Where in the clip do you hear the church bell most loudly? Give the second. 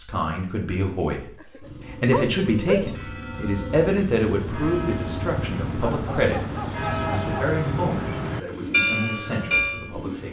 9 s.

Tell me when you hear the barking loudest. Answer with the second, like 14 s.
3 s.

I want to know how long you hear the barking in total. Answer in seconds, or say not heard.
3 s.